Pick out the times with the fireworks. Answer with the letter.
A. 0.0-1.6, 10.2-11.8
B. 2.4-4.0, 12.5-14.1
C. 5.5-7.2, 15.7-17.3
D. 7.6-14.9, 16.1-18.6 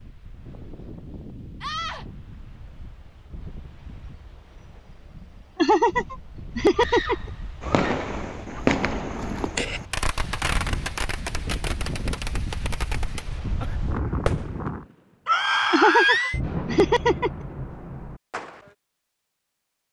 D.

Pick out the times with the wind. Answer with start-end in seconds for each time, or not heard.
0.0-14.8.